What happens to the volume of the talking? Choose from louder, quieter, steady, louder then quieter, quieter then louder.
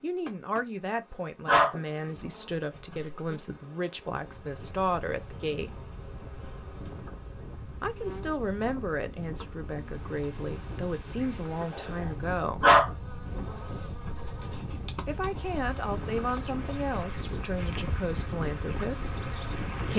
steady.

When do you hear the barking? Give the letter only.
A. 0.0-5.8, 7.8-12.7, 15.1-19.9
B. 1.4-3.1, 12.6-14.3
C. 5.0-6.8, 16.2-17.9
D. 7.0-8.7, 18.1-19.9
B.